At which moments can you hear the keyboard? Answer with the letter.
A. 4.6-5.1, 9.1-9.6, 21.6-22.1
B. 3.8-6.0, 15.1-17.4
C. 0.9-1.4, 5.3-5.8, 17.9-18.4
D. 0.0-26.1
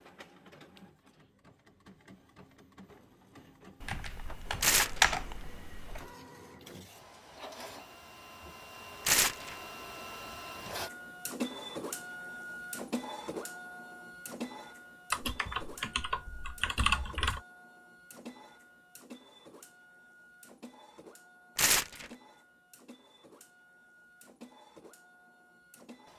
B.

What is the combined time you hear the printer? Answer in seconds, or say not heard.
26 s.